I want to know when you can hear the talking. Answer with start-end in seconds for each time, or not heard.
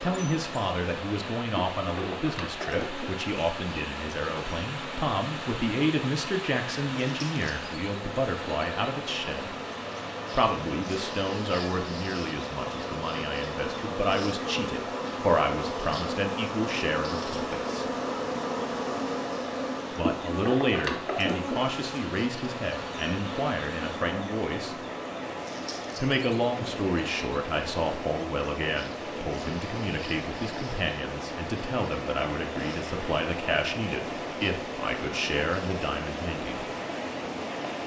0.0-9.6, 10.3-17.9, 19.9-24.8, 26.0-36.6.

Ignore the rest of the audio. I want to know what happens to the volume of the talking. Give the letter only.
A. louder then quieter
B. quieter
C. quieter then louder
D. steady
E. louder
D.